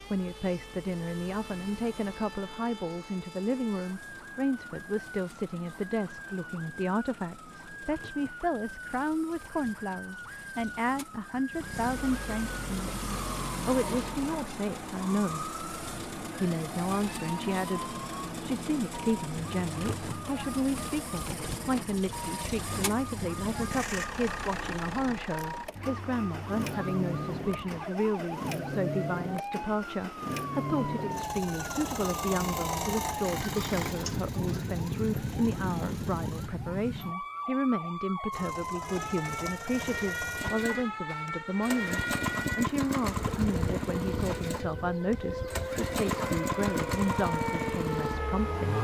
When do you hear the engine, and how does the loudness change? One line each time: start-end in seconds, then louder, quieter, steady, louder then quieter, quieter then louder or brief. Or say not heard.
0.0-36.5 louder
38.3-48.7 louder.